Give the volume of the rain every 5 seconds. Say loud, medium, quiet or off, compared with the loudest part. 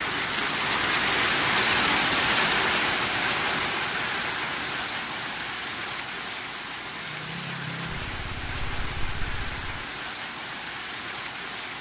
loud, medium, medium.